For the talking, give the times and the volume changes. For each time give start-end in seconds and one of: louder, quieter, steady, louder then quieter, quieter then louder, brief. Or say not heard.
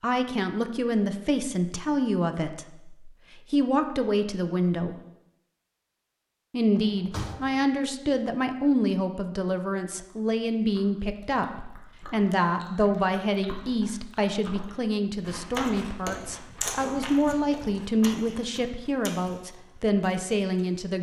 0.0-5.0 steady
6.5-20.9 steady.